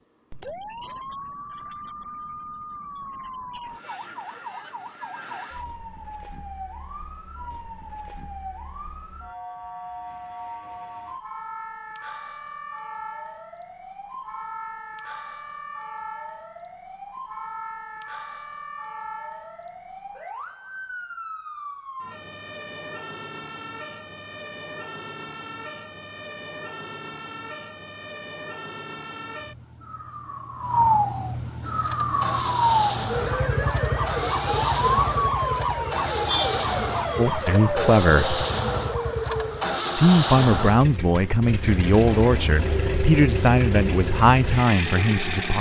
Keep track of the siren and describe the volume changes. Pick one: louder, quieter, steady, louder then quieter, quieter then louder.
louder.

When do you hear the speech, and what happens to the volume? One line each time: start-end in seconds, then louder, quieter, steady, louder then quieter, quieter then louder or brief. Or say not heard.
37.1-38.4 brief
40.0-45.5 steady.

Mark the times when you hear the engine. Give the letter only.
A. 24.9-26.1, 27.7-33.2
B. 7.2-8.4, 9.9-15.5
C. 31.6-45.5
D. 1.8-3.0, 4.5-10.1
C.